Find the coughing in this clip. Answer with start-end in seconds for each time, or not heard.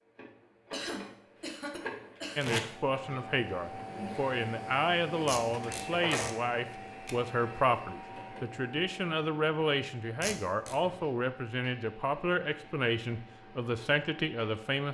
0.7-3.2.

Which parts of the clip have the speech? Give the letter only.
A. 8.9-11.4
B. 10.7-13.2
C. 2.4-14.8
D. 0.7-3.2
C.